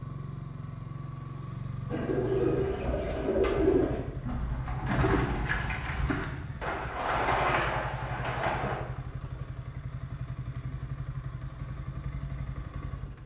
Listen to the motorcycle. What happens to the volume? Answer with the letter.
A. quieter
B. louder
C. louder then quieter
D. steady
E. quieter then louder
D.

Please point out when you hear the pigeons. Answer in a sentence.
You can hear the pigeons from 1.9 to 8.8 s.